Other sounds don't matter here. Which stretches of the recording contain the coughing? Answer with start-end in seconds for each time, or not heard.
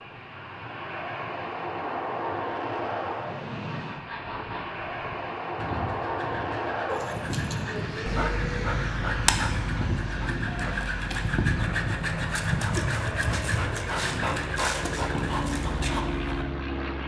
not heard.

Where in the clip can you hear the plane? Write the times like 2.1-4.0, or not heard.
0.0-17.0.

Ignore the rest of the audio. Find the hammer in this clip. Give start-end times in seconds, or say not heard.
not heard.